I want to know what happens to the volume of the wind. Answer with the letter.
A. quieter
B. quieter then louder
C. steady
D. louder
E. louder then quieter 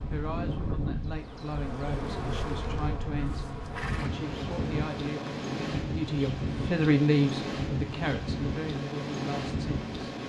C.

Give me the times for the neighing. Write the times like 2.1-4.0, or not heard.
3.1-4.1.